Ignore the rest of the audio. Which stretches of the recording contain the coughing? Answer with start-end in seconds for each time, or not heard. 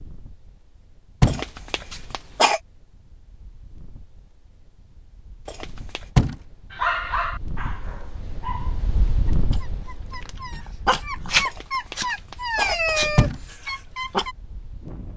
1.2-2.6, 5.5-6.1, 11.4-13.1.